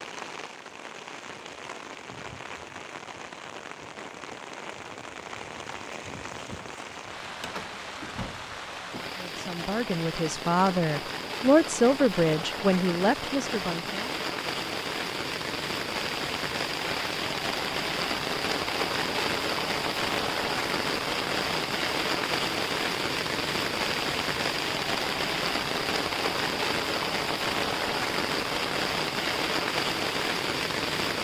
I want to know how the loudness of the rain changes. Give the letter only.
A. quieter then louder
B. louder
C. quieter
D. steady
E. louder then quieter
B.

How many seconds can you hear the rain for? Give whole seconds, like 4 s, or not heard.
31 s.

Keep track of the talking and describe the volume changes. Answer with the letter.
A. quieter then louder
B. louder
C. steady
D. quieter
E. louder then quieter
E.